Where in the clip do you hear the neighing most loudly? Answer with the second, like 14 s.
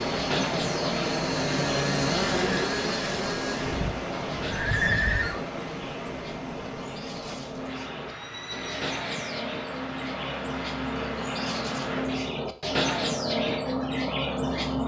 5 s.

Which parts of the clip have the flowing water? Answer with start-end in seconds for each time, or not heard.
0.0-12.1.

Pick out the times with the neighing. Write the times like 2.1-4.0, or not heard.
3.6-5.4, 8.1-9.5.